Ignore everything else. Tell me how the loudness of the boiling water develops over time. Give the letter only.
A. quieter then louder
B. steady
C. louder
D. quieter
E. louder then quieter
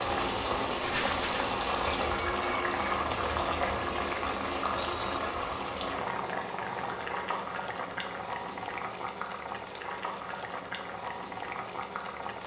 D.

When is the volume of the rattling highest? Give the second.
1 s.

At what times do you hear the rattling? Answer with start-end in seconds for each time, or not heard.
0.8-1.6, 4.8-5.2, 9.2-10.8.